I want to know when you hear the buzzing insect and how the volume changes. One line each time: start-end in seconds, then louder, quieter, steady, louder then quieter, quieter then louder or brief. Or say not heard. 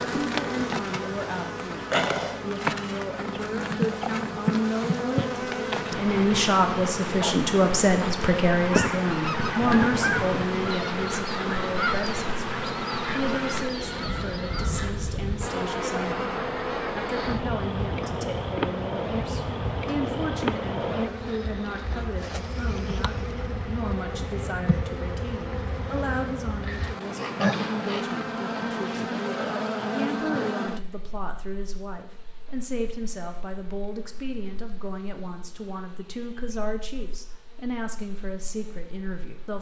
0.0-39.5 quieter.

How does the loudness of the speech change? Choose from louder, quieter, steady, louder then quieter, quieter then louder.
quieter.